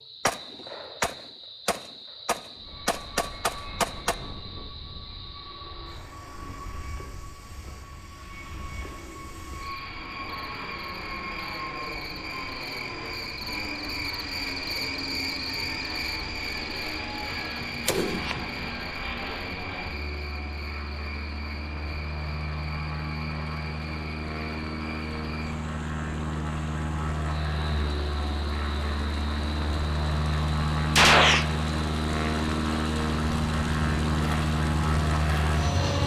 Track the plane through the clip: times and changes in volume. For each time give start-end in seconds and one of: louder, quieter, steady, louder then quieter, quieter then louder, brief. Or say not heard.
2.5-36.0 louder.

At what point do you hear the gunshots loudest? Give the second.
31 s.